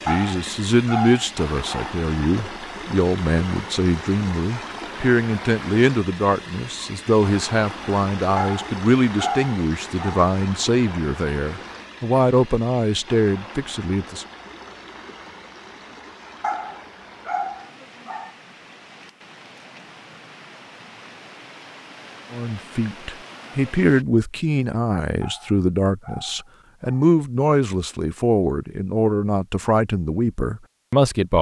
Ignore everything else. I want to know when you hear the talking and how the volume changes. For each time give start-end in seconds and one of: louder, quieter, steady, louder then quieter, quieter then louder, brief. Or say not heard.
0.1-14.2 steady
22.3-31.3 steady.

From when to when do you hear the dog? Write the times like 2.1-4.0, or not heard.
0.1-2.0, 8.3-10.3, 16.4-18.4, 25.2-27.1.